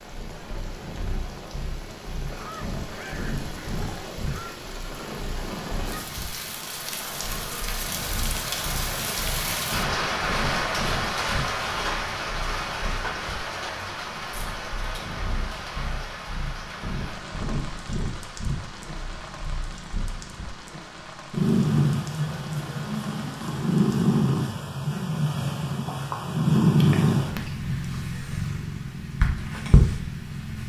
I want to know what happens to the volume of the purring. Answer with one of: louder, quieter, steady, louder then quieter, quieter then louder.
louder.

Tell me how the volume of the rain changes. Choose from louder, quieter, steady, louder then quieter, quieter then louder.
louder then quieter.